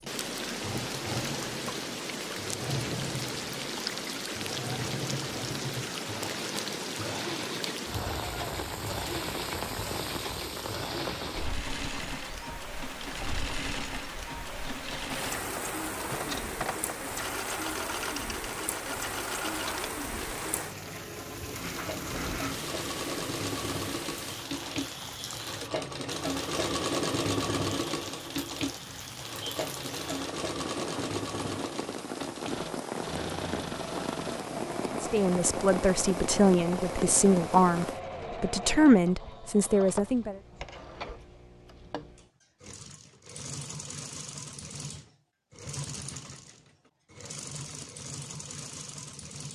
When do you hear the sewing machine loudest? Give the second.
27 s.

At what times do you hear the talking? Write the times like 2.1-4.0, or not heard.
35.0-40.4.